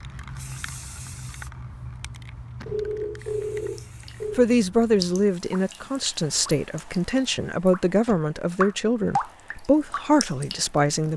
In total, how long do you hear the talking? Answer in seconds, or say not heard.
7 s.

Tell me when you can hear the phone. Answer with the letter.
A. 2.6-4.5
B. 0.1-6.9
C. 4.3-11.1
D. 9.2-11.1
A.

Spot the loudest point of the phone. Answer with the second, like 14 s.
3 s.